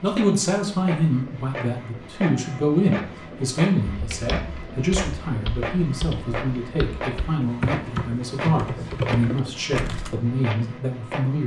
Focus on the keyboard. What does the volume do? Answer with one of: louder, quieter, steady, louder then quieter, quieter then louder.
louder.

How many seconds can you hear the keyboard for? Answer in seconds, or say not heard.
6 s.